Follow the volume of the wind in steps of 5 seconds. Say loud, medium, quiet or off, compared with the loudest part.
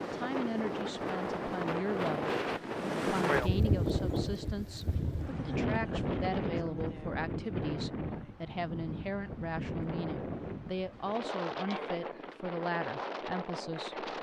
loud, loud, medium.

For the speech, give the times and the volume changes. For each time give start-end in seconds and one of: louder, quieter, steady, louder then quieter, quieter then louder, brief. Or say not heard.
0.0-2.4 brief
3.0-14.0 steady.